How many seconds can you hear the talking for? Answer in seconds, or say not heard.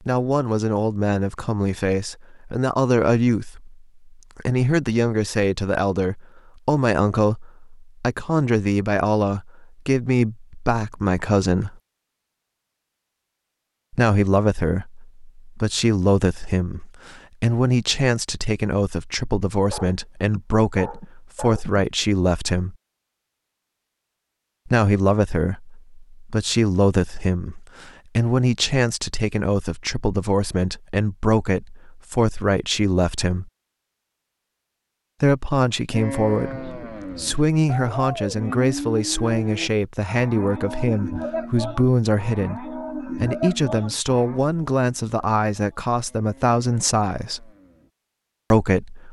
42 s.